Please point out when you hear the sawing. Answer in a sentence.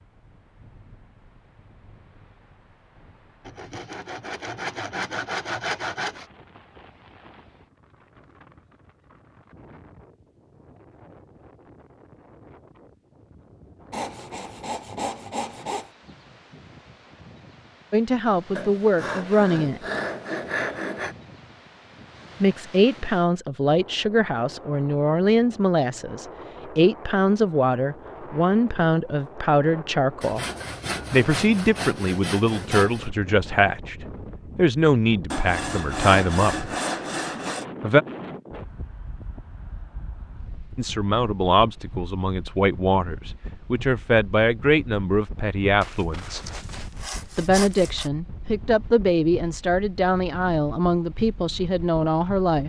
The sawing can be heard from 3.5 to 6.2 s, from 13.9 to 15.9 s, from 18.6 to 21.1 s, from 30.2 to 33.1 s, from 35.3 to 37.6 s and from 45.8 to 48.1 s.